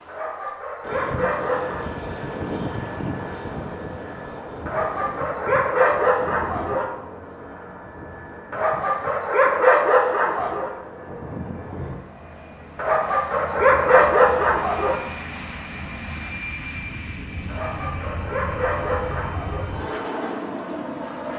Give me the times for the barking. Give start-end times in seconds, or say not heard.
0.1-1.8, 4.7-6.9, 8.5-10.7, 12.8-15.0, 17.4-19.6.